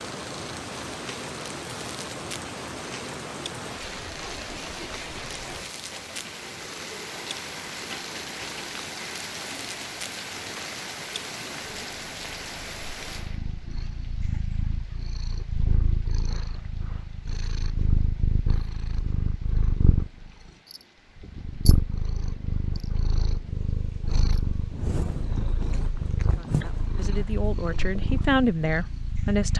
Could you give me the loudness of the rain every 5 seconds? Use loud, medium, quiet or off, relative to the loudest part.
loud, loud, loud, quiet, quiet, quiet.